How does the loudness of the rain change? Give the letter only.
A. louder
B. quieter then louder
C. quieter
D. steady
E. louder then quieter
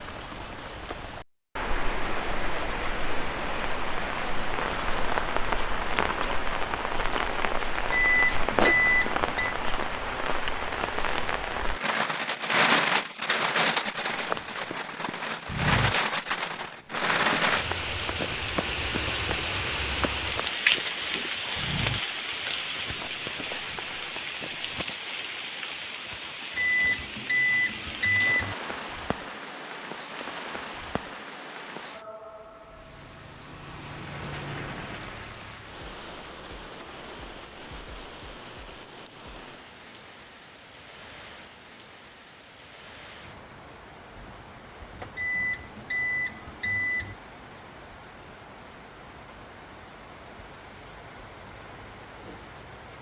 C.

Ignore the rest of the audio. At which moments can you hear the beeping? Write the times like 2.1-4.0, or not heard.
7.9-9.6, 26.6-28.6, 45.1-47.1.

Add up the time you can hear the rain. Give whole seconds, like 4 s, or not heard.
53 s.